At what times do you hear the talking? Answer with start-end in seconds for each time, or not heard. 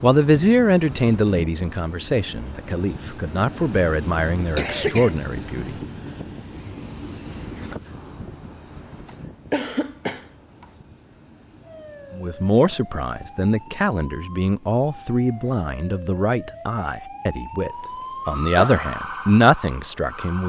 0.0-5.8, 12.2-20.4.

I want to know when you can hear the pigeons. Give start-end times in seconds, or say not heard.
not heard.